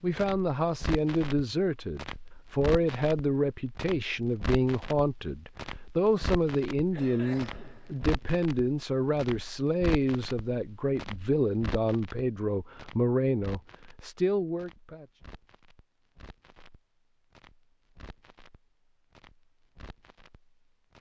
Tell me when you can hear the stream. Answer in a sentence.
The stream can't be heard in this clip.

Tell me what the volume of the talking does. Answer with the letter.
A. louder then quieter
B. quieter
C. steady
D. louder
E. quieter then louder
C.